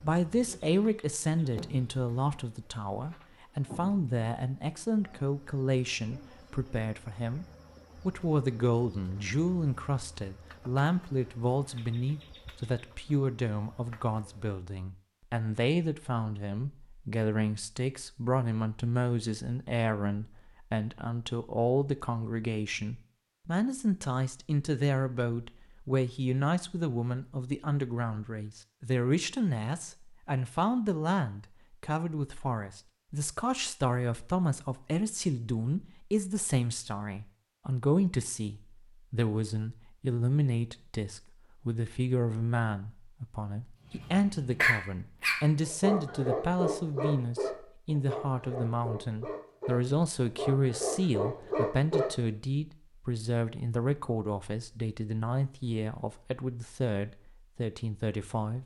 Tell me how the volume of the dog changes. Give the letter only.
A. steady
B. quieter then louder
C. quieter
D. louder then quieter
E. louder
B.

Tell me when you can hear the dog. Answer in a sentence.
You can hear the dog from 43.9 to 52.1 s.